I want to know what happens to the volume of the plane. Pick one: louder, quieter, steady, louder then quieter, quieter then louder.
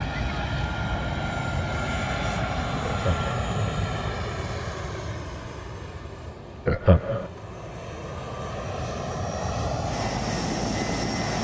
quieter then louder.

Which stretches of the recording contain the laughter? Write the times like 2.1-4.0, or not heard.
2.8-3.3, 6.7-7.3.